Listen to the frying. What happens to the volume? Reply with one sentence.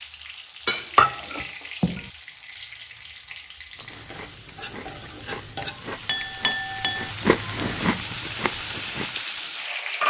The volume of the frying goes up.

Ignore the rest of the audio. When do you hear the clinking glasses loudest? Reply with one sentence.
The loudest moment of the clinking glasses is at 1 second.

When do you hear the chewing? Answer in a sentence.
You can hear the chewing from 3.8 to 9.2 s.